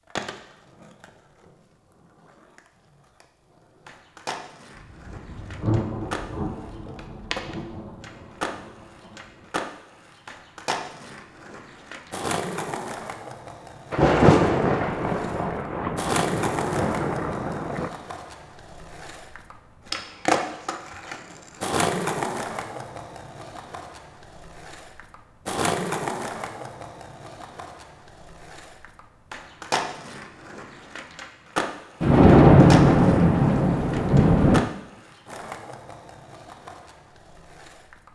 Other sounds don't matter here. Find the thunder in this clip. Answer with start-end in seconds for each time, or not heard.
4.8-9.4, 13.9-17.9, 32.0-34.6.